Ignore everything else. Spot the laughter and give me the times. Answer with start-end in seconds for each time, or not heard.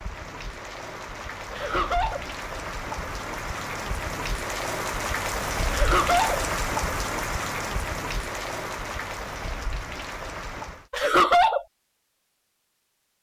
1.5-2.2, 5.7-6.4, 10.9-11.7.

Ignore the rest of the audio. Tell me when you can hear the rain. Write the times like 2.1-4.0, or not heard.
0.0-10.9.